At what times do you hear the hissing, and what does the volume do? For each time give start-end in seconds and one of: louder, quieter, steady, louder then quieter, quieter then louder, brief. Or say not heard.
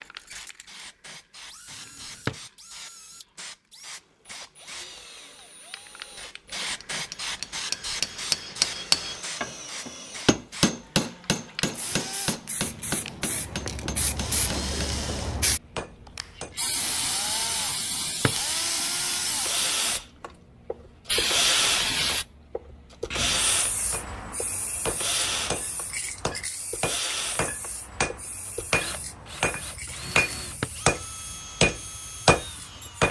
0.0-33.0 louder then quieter.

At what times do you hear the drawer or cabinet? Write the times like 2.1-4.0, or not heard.
1.7-2.4, 17.6-18.4, 30.0-30.7.